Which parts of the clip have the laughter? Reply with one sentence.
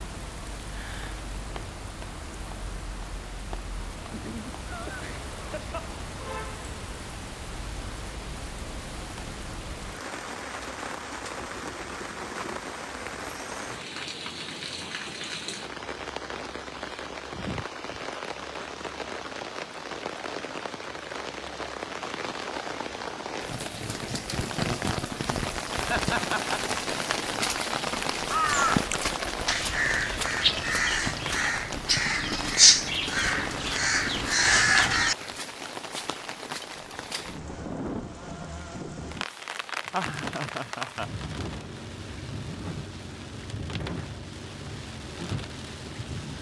The laughter can be heard from 4.1 to 5.9 s, from 25.9 to 26.6 s and from 39.9 to 41.2 s.